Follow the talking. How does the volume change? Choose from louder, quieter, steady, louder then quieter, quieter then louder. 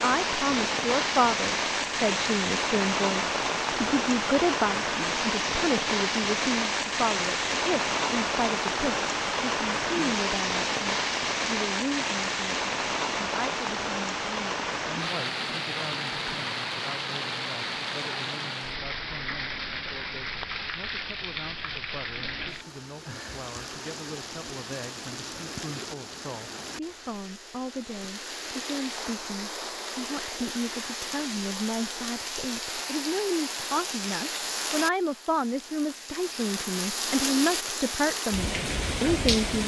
quieter then louder.